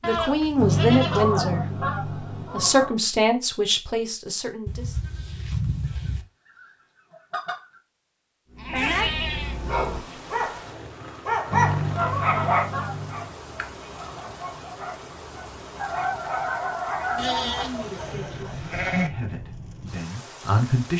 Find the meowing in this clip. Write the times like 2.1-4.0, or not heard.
not heard.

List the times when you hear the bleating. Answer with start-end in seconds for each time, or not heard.
0.0-1.4, 4.7-6.2, 8.6-10.2, 13.6-14.0, 17.1-19.1.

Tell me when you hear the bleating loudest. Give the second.
9 s.